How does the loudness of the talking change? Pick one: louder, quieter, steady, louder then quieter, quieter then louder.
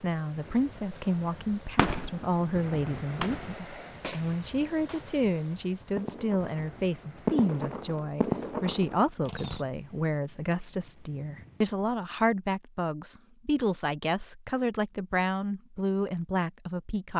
steady.